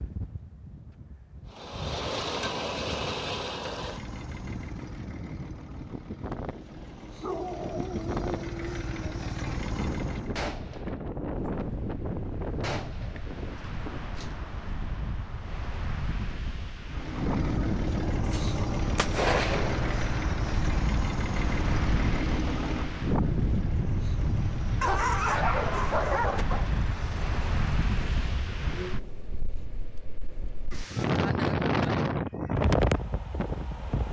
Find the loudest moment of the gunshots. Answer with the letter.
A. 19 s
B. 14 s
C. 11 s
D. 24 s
A.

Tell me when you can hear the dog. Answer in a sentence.
The dog can be heard from 7.2 to 9.2 s and from 24.8 to 26.6 s.